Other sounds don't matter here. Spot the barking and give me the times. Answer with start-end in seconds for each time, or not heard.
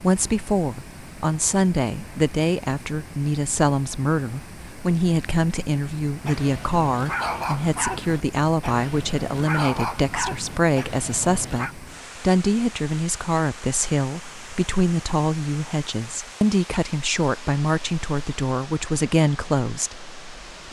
6.2-11.8.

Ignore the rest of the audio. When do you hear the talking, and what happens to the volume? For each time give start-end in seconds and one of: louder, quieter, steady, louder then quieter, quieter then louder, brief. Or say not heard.
0.0-20.6 steady.